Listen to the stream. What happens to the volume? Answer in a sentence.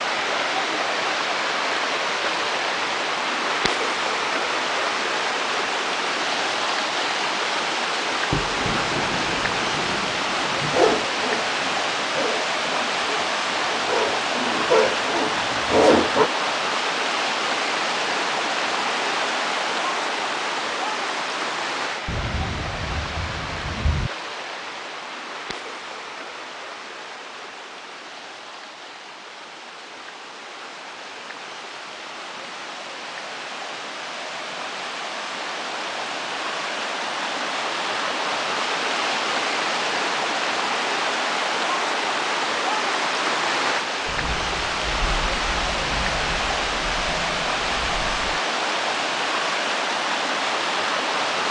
The volume of the stream goes down, then up.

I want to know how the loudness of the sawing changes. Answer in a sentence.
The volume of the sawing goes up.